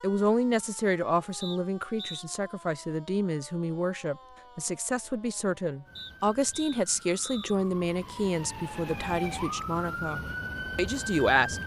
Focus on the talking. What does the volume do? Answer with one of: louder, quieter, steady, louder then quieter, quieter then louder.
steady.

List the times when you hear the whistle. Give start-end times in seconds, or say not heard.
1.4-2.2, 6.0-7.5.